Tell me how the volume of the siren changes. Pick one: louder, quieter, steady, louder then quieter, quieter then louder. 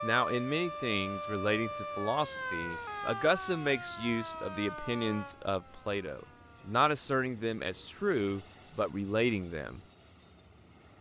quieter.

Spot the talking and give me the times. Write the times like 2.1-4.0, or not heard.
0.0-9.8.